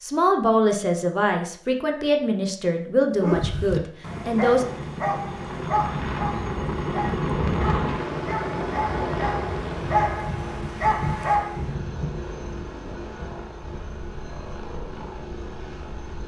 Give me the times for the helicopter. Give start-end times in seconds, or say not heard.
4.0-16.2.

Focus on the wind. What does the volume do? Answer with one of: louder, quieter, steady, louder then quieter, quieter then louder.
quieter.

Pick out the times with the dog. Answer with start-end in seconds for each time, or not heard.
3.2-11.6.